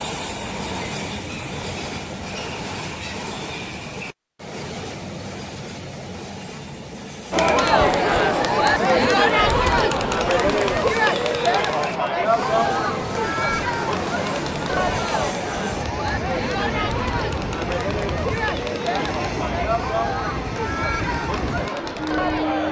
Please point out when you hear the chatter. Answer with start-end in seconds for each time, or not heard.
7.3-22.6.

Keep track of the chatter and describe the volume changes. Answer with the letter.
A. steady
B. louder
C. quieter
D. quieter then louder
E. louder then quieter
C.